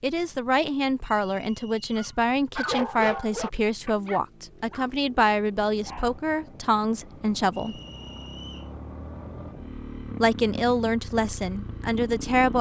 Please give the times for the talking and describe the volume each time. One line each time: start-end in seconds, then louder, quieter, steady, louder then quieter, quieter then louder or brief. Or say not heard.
0.0-7.8 steady
10.2-12.5 brief.